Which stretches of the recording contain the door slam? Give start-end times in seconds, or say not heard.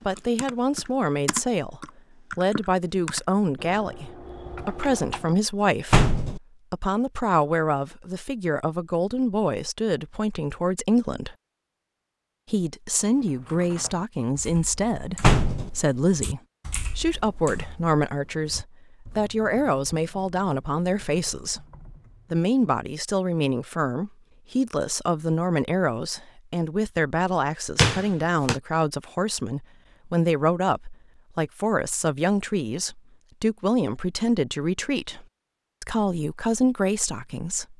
5.9-6.4, 15.2-15.7, 27.8-28.6.